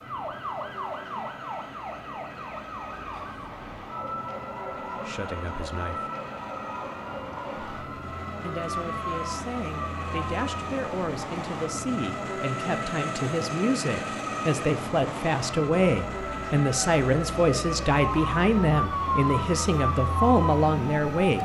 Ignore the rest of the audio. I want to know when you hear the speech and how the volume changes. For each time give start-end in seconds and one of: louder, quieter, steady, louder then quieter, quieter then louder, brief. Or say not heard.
4.8-6.1 brief
8.4-21.4 louder.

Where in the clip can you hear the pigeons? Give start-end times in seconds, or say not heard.
not heard.